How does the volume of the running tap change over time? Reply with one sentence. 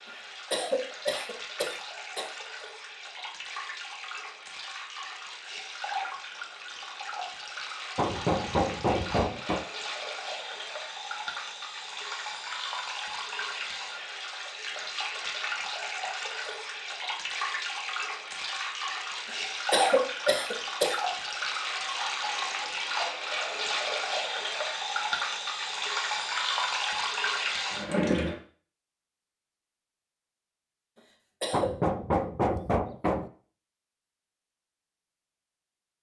The volume of the running tap goes up.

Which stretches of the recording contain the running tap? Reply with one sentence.
The running tap can be heard from 0.0 to 28.4 s.